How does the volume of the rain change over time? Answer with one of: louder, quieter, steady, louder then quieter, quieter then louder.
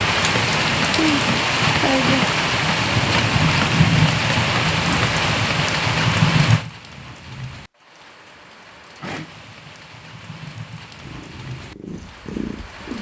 quieter.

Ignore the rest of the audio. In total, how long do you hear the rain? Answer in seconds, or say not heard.
13 s.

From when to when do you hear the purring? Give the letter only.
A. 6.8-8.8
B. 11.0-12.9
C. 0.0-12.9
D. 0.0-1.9
B.